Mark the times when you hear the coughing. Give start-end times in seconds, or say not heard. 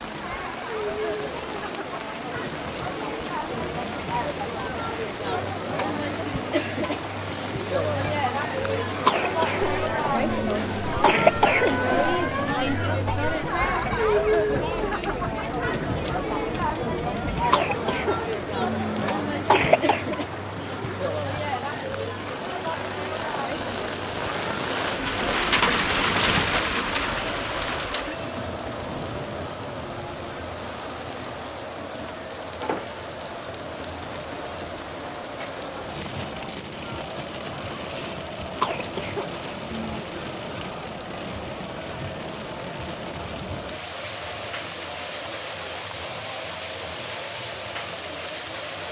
9.1-11.8, 17.5-20.1, 38.6-40.0.